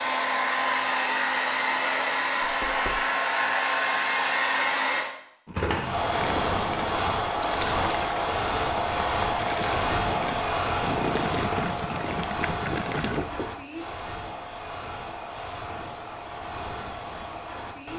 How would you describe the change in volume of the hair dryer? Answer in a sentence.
The volume of the hair dryer goes down.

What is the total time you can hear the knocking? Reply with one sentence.
You can hear the knocking for 2 seconds altogether.